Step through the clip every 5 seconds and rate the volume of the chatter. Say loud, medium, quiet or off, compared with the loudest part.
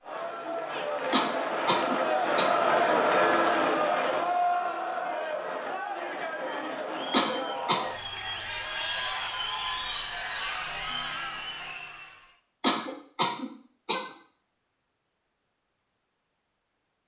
loud, medium, medium, off.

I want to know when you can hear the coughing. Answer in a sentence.
The coughing can be heard from 1.1 to 2.5 s, from 7.1 to 7.8 s and from 12.6 to 14.2 s.